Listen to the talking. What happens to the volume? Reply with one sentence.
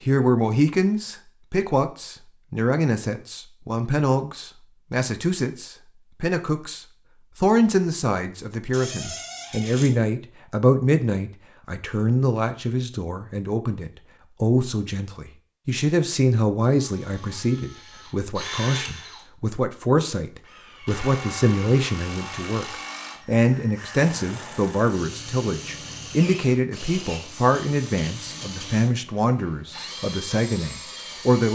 The volume of the talking stays about the same.